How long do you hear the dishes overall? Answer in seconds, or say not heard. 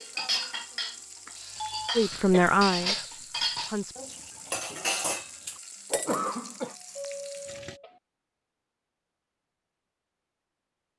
6 s.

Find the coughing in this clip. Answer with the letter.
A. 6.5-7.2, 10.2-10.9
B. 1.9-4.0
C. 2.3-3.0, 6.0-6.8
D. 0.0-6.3
C.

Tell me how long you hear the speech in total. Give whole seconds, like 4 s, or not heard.
2 s.